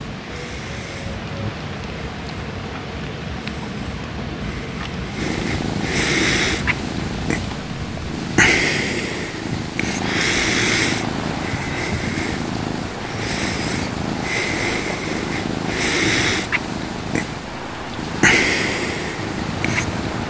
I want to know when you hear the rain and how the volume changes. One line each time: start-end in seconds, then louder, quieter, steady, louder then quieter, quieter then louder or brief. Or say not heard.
0.0-20.2 steady.